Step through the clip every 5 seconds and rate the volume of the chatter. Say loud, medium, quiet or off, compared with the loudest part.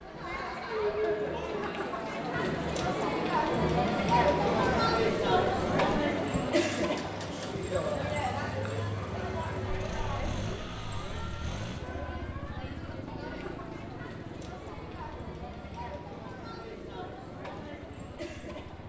loud, loud, quiet, quiet.